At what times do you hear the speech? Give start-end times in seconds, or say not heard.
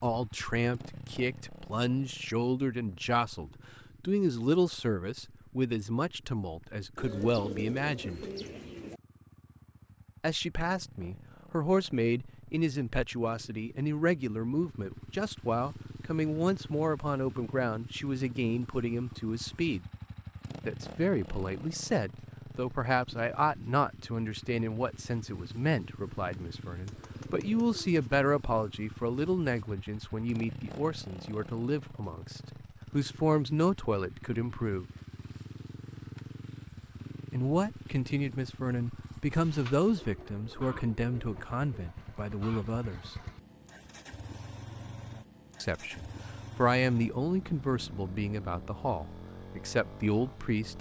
0.0-8.2, 10.2-19.9, 20.6-34.9, 37.3-43.1, 45.6-50.7.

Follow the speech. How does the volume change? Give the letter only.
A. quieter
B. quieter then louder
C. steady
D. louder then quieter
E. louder
C.